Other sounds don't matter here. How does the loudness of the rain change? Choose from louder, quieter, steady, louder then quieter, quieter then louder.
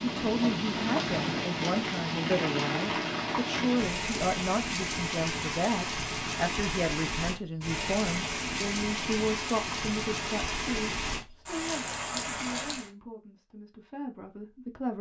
steady.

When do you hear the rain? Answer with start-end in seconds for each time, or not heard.
0.0-12.9.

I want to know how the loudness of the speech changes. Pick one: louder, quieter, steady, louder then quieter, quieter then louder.
quieter.